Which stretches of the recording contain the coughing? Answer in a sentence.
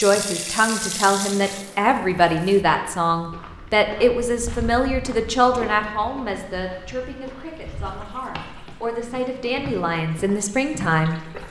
You can't hear the coughing here.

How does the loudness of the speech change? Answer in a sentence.
The loudness of the speech goes down, then up.